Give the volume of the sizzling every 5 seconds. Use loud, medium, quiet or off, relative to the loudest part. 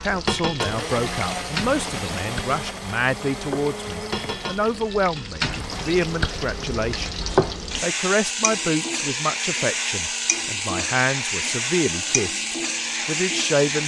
medium, loud, loud.